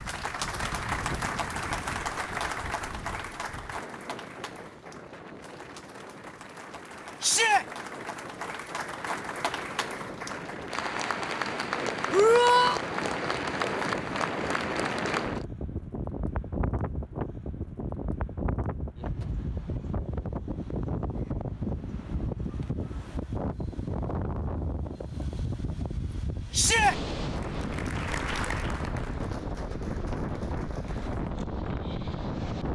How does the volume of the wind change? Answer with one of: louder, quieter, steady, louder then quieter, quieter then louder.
louder.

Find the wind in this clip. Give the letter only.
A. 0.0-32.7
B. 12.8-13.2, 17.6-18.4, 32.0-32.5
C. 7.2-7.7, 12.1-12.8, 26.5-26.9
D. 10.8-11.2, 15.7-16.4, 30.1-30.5
A.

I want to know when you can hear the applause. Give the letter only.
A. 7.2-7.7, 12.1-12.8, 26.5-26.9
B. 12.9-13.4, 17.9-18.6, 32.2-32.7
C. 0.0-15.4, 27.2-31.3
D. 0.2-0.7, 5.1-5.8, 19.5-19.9
C.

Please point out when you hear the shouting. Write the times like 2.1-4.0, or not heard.
7.2-7.7, 12.1-12.8, 26.5-26.9.